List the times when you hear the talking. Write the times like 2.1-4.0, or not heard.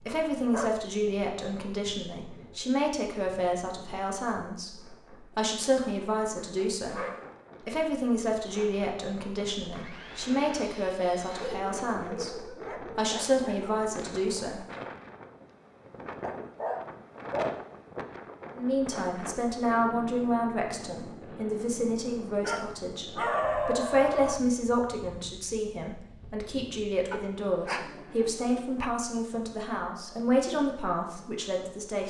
0.1-7.0, 7.7-14.7, 18.6-32.0.